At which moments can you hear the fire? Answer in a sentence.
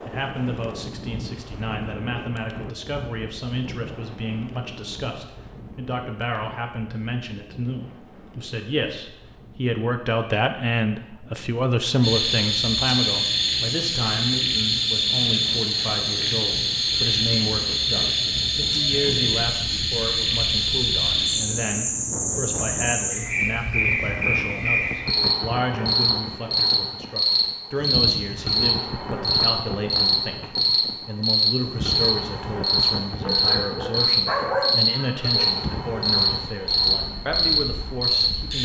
The fire can't be heard in this clip.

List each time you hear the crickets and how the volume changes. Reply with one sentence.
You can hear the crickets from 12.0 to 38.6 s, at a steady volume.